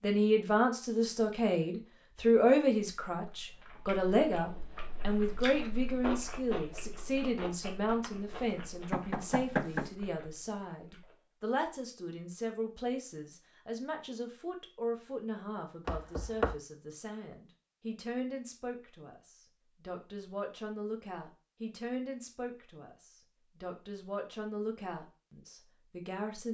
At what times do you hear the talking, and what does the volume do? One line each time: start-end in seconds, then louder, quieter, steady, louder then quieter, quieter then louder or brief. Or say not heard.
0.0-26.4 quieter.